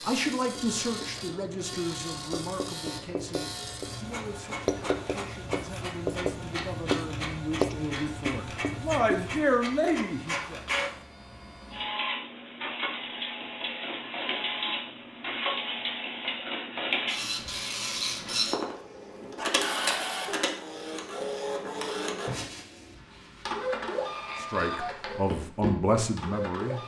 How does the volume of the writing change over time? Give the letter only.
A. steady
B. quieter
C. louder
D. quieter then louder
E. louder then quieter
C.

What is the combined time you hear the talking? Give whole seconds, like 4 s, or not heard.
13 s.